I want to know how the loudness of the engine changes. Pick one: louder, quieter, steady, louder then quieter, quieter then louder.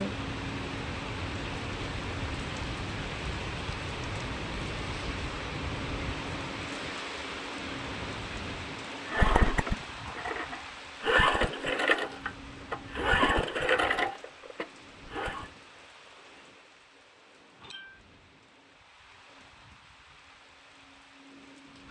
louder then quieter.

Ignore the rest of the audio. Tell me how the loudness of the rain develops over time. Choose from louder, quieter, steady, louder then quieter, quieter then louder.
quieter.